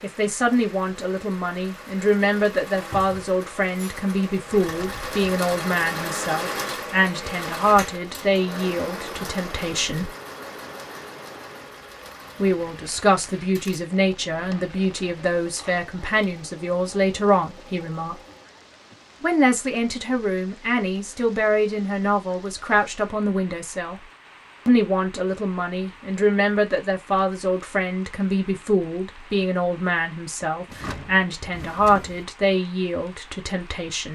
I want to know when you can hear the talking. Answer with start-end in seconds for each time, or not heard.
0.0-10.1, 12.3-18.1, 19.2-24.0, 24.6-34.1.